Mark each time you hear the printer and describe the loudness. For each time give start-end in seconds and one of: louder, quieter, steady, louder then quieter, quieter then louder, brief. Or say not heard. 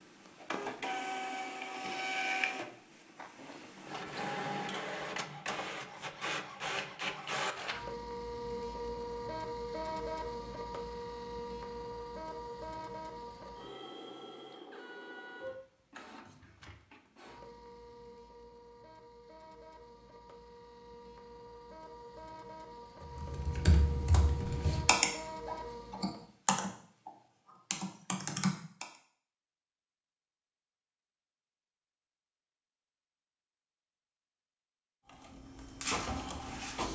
0.0-26.2 quieter then louder
35.0-36.9 brief.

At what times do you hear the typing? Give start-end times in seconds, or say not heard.
23.0-27.1, 27.7-28.9.